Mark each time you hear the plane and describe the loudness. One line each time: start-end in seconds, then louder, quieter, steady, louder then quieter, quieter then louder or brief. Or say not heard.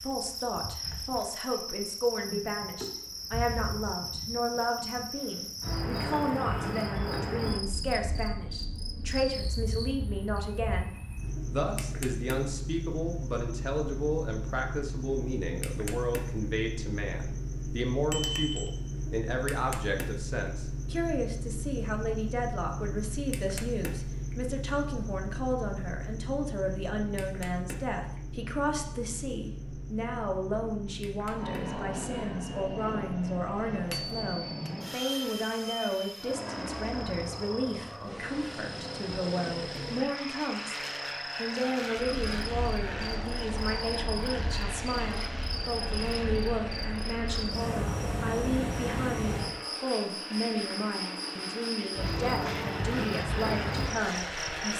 31.4-54.7 steady.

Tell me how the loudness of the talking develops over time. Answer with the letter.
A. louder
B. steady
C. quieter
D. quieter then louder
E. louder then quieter
B.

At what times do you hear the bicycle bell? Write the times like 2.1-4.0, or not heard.
18.1-18.6, 33.9-34.7.